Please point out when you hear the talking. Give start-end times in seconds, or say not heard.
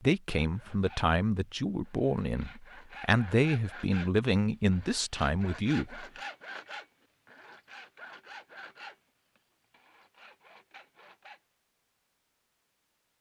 0.0-6.0.